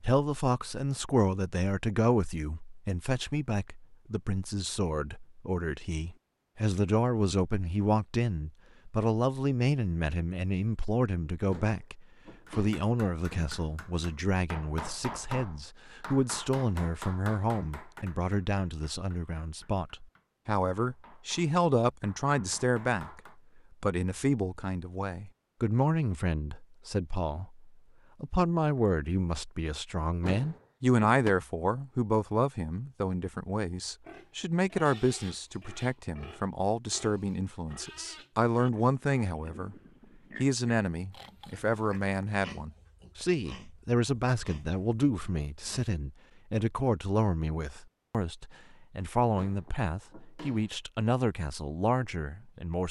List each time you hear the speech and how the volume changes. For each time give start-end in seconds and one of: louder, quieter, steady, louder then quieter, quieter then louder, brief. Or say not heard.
0.0-39.8 steady
40.4-52.8 steady.